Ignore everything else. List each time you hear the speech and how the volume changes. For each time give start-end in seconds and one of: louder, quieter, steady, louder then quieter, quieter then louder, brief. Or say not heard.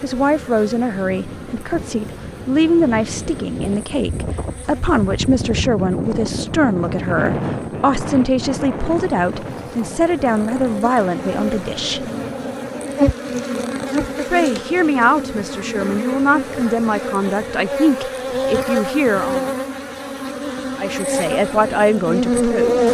0.0-12.1 steady
14.3-19.5 steady
20.8-22.8 brief.